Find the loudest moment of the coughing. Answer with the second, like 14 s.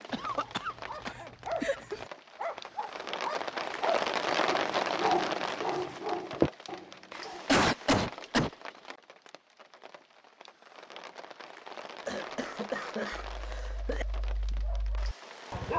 8 s.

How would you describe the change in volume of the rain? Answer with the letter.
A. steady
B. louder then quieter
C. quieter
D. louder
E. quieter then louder
B.